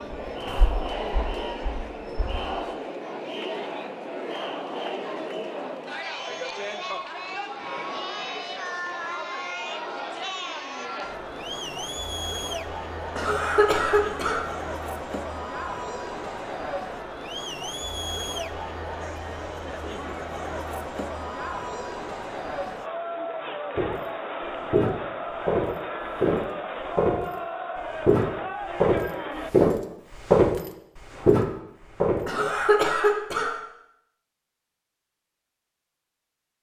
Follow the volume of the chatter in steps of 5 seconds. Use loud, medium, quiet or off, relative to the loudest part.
loud, loud, loud, loud, loud, loud, off, off.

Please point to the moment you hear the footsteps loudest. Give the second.
30 s.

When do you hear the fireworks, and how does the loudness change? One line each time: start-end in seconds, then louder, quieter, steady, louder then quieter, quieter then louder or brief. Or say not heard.
not heard.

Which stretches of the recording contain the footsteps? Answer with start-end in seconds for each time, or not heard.
0.0-2.5, 23.8-32.3.